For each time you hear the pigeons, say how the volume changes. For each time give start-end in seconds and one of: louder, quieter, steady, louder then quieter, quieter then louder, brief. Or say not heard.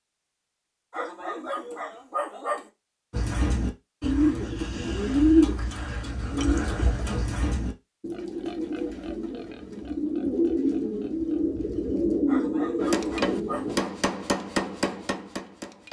3.1-13.8 quieter then louder.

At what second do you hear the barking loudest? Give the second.
2 s.